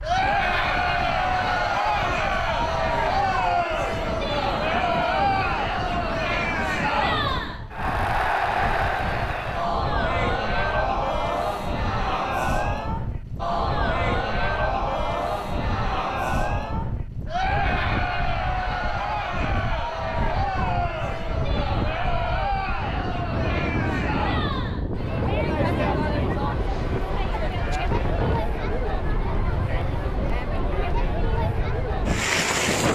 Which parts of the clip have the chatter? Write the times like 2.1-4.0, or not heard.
0.0-32.9.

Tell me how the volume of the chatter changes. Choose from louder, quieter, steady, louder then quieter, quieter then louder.
quieter.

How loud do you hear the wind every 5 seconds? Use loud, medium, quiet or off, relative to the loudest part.
medium, medium, medium, medium, loud, loud, loud.